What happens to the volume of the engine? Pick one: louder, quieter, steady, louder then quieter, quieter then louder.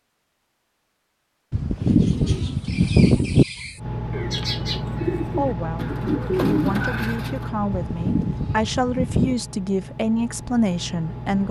quieter.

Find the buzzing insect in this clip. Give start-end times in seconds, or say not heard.
not heard.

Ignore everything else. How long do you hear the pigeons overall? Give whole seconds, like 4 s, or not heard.
6 s.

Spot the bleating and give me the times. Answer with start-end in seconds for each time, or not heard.
1.5-3.5, 7.7-9.3.